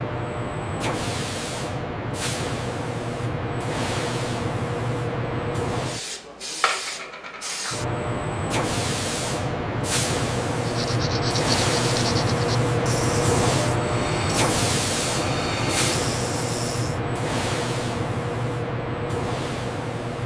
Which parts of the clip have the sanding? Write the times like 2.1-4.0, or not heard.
10.6-17.0.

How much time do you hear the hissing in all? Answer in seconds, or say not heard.
20 s.